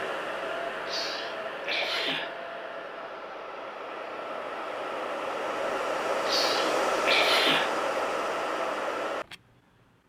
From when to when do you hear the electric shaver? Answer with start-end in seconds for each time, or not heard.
not heard.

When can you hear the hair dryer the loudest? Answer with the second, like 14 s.
7 s.